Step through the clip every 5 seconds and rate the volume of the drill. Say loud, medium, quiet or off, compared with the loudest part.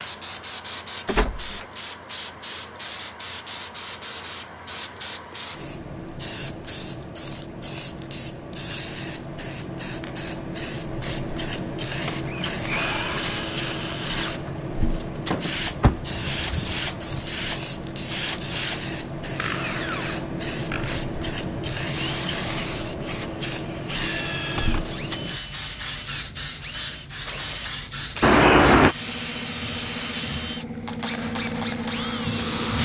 off, off, loud, loud, loud, loud, loud.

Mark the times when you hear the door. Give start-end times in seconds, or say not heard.
1.1-1.6, 15.8-17.2, 28.2-28.9.